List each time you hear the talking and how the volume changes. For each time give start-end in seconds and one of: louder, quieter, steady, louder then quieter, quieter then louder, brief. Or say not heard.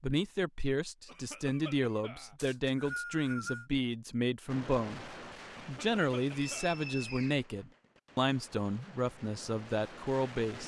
0.0-10.6 steady.